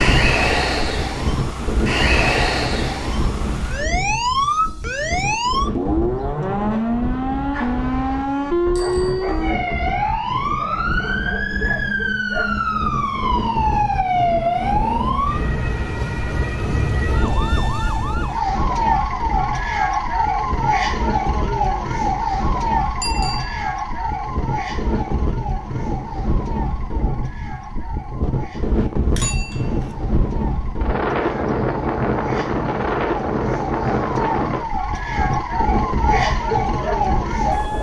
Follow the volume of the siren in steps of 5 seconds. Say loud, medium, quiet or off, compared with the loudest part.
loud, loud, loud, loud, loud, quiet, medium, loud.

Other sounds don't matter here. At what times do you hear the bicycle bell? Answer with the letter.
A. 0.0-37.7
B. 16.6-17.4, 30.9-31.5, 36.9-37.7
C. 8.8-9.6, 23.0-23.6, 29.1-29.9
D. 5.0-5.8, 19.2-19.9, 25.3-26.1
C.